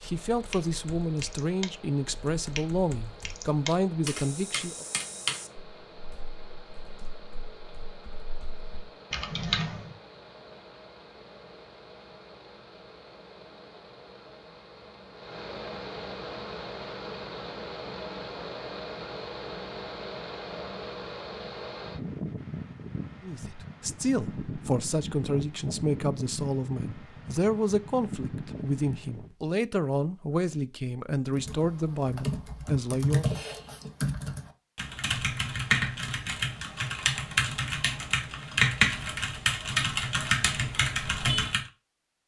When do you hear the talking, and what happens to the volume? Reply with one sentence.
The talking can be heard from 0.0 to 4.8 s, at a steady volume; and from 23.2 to 33.2 s, at a steady volume.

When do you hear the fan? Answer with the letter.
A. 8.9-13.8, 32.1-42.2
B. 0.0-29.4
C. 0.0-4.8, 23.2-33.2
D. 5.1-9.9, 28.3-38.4
B.